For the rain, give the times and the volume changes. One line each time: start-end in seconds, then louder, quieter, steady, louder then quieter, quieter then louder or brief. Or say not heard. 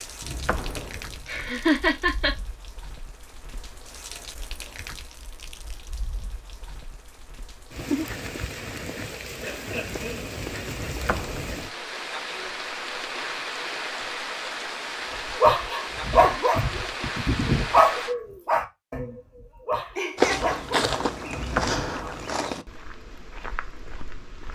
0.0-18.1 louder.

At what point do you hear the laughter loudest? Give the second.
2 s.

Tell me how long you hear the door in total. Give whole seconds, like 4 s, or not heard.
3 s.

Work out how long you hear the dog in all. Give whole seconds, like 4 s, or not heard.
7 s.